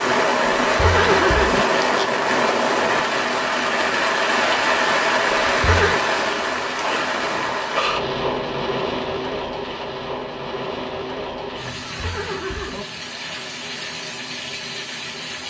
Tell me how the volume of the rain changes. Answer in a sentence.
The loudness of the rain goes down.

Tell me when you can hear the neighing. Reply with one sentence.
The neighing can be heard from 0.7 to 1.6 s, from 5.5 to 6.0 s and from 11.8 to 12.8 s.